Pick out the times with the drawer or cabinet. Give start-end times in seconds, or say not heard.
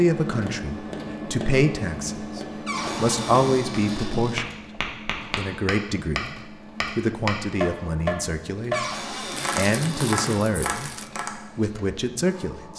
2.6-4.4, 8.7-10.4.